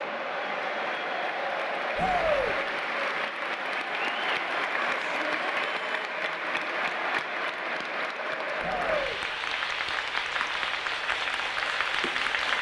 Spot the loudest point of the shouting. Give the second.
2 s.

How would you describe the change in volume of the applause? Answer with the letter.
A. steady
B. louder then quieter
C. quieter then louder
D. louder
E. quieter
A.